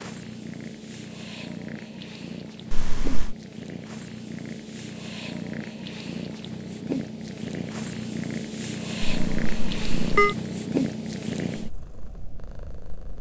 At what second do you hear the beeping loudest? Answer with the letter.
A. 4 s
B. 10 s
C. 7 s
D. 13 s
B.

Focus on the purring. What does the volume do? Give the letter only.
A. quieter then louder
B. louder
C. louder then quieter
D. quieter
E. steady
B.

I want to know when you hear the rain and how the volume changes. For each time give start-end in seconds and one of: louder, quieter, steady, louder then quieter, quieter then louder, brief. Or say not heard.
not heard.